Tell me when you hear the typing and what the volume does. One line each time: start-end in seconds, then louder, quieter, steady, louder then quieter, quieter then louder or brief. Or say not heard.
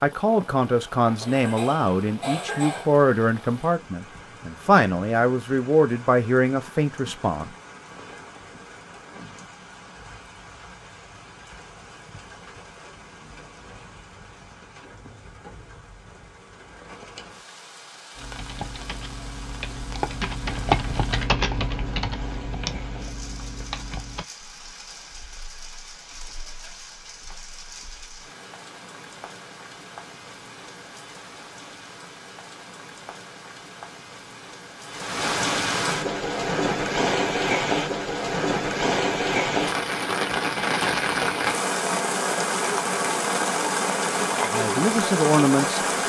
18.1-28.2 louder then quieter.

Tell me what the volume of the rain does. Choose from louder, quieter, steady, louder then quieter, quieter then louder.
louder.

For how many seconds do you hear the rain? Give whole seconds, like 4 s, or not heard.
46 s.